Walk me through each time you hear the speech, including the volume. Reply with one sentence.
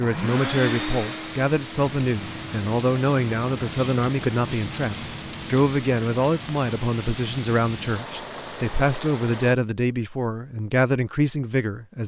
You can hear the speech from 0.0 to 12.0 s, at a steady volume.